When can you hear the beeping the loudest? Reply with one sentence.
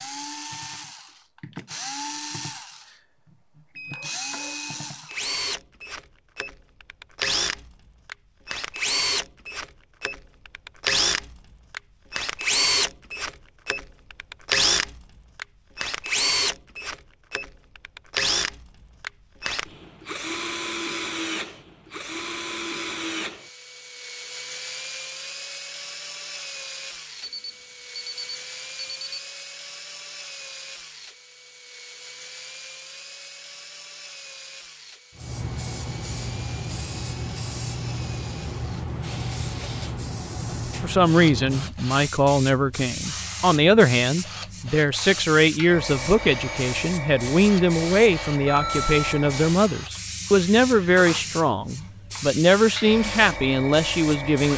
The loudest moment of the beeping is at 49 seconds.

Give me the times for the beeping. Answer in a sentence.
The beeping can be heard from 3.8 to 4.8 s, from 27.2 to 29.2 s and from 48.5 to 49.2 s.